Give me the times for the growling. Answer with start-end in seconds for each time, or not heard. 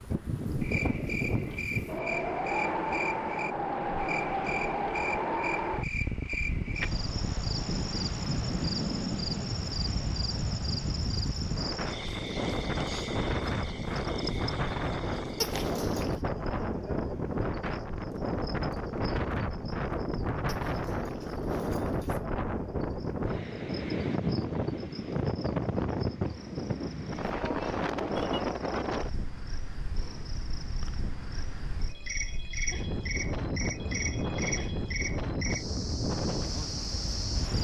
15.4-16.2, 20.4-22.2.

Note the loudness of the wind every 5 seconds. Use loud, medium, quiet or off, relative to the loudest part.
loud, loud, loud, loud, loud, loud, medium, loud.